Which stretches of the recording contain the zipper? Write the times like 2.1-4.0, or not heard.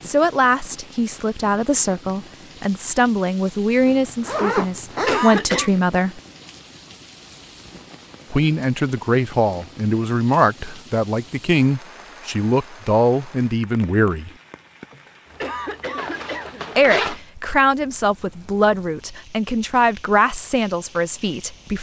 3.9-5.3, 15.9-17.2.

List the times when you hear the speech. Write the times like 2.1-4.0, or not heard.
0.0-6.2, 8.3-14.3, 16.8-21.7.